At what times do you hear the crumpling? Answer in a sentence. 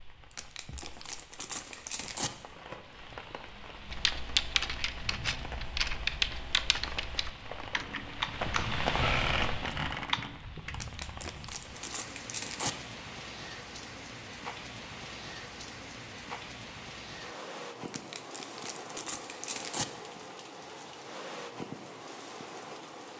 You can hear the crumpling from 0.3 to 2.3 s, from 10.7 to 12.7 s and from 17.9 to 19.9 s.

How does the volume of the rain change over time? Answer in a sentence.
The loudness of the rain goes up, then down.